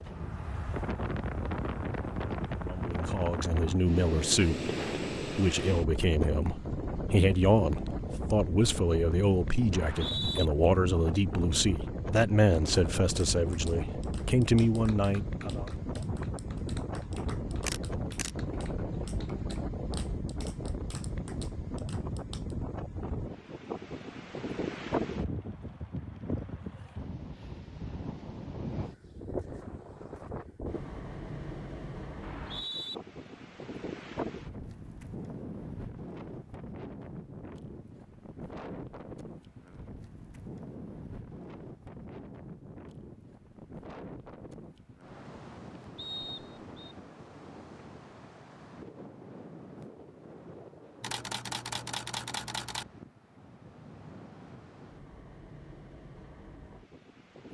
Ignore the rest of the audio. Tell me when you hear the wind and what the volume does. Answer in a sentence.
The wind can be heard from 0.0 to 57.5 s, getting quieter.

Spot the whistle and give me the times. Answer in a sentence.
You can hear the whistle from 9.7 to 10.4 s, from 32.2 to 33.0 s and from 46.0 to 47.0 s.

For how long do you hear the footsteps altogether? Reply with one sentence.
You can't hear the footsteps here.